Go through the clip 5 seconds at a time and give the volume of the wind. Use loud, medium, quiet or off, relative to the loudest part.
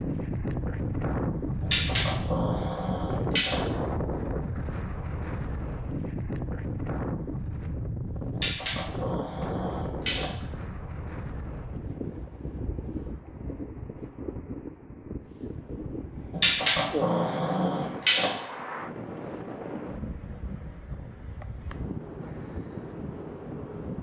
loud, loud, medium, medium, medium.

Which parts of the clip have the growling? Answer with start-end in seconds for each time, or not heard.
1.6-3.5, 8.3-10.3, 16.3-18.3.